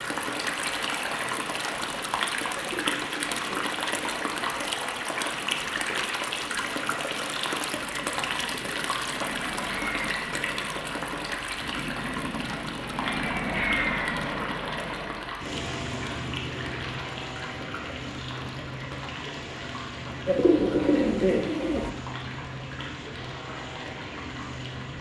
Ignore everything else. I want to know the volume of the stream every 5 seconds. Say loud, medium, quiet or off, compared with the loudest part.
loud, loud, loud, medium, medium.